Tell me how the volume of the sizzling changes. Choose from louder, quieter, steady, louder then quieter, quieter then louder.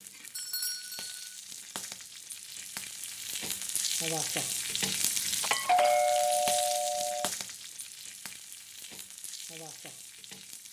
louder then quieter.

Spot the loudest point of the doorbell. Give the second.
6 s.